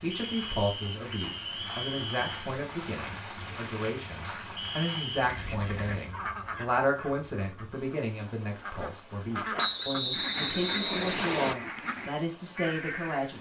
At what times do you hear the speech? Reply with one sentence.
The speech can be heard from 0.0 to 13.3 s.